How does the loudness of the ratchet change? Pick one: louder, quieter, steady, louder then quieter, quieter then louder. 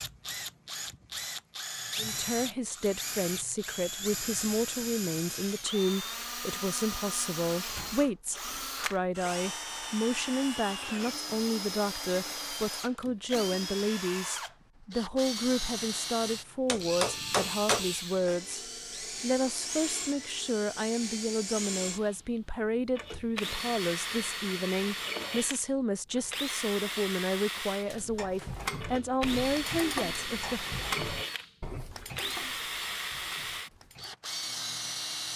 quieter.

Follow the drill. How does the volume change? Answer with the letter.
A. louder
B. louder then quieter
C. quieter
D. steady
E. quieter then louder
D.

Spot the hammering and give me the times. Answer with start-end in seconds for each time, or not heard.
16.6-18.4.